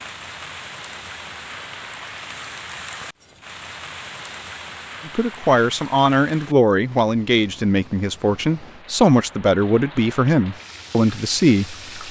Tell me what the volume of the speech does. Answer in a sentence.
The volume of the speech stays about the same.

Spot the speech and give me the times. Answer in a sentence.
The speech can be heard from 5.0 to 12.0 s.